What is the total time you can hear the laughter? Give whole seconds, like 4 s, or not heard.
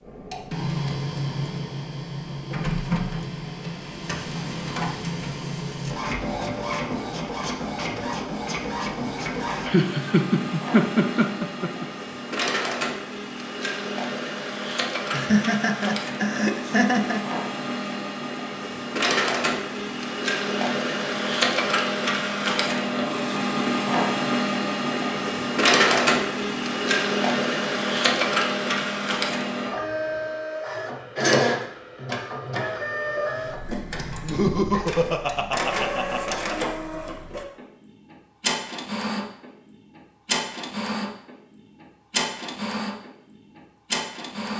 7 s.